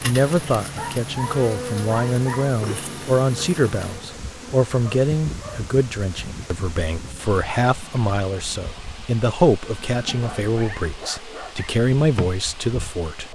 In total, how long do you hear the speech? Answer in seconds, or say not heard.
13 s.